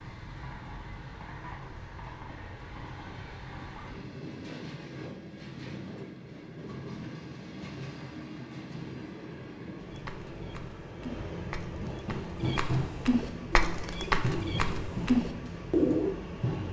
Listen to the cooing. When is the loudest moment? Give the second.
16 s.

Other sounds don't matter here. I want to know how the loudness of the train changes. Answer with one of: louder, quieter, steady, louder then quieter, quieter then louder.
louder.